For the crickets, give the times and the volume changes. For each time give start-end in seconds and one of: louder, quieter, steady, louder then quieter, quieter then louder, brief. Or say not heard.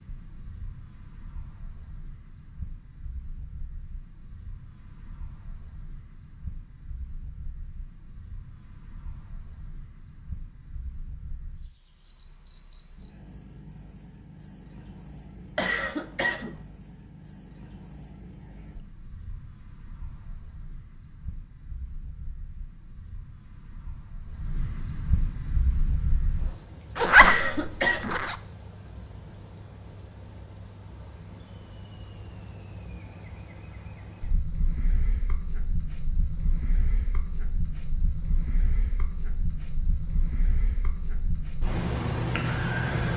0.0-43.1 louder.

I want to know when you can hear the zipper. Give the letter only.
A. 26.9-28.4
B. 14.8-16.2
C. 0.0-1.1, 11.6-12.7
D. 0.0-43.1
A.